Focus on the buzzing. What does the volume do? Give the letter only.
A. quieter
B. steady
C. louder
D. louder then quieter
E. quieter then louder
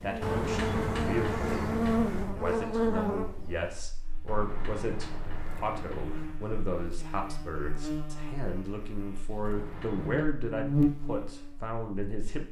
E.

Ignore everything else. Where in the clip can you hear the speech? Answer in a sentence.
The speech can be heard from 0.0 to 12.4 s.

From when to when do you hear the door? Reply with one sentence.
The door can be heard from 0.2 to 2.4 s, from 4.2 to 6.4 s and from 9.4 to 10.4 s.